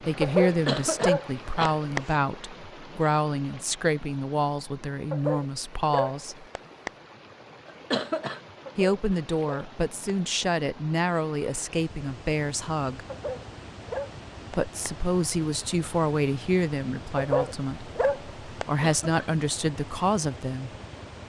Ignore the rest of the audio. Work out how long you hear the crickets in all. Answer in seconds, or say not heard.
not heard.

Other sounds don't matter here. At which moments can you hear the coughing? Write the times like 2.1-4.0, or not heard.
0.5-2.1, 7.7-8.4, 18.6-19.4.